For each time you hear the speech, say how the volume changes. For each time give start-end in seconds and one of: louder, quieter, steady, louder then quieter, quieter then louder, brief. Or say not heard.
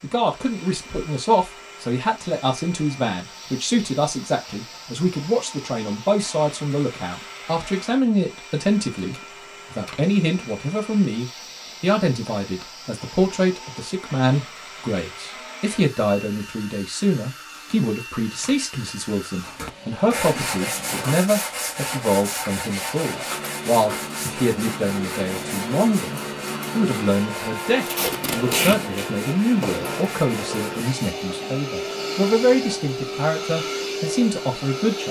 0.0-35.0 steady.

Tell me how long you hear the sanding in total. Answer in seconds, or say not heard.
12 s.